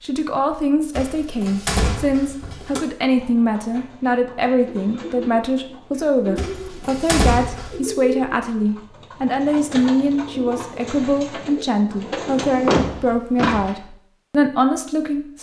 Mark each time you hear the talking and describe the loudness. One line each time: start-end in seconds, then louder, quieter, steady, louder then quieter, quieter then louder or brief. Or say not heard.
0.0-15.3 steady.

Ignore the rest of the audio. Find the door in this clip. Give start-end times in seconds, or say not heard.
0.9-2.8, 6.3-7.8, 12.4-13.8.